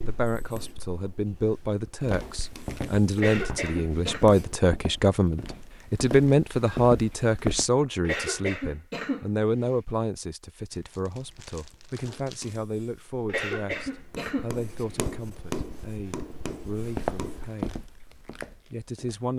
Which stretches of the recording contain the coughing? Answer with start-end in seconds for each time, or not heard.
3.1-4.3, 8.0-9.8, 13.2-15.0.